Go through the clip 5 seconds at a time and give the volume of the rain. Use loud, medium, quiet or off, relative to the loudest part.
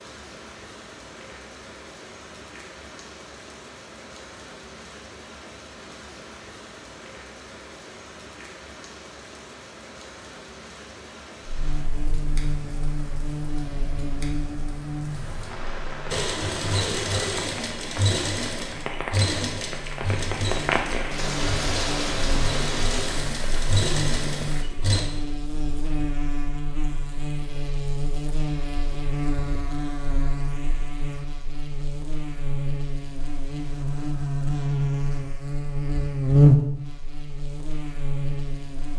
quiet, quiet, quiet, medium, loud, off, off, off.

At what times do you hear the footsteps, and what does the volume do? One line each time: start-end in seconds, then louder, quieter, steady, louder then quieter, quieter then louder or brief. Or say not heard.
not heard.